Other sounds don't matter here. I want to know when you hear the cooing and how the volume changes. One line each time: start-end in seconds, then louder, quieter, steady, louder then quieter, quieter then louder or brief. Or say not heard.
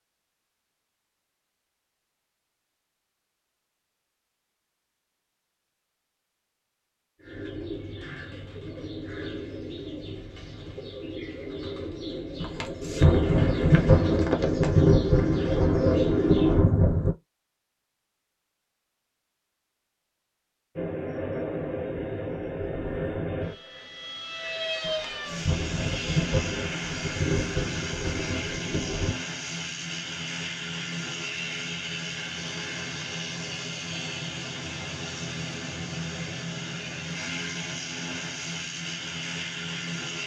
7.2-16.8 louder.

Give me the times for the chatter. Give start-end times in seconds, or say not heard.
not heard.